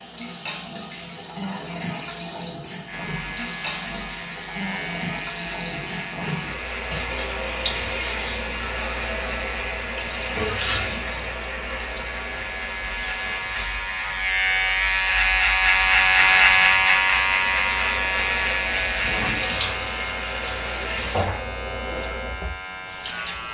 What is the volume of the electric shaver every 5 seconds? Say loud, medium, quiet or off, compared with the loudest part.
quiet, quiet, medium, loud, quiet.